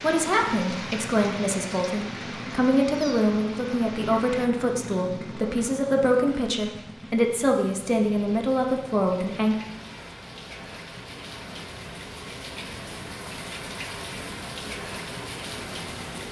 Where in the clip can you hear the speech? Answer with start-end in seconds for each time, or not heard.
0.0-9.6.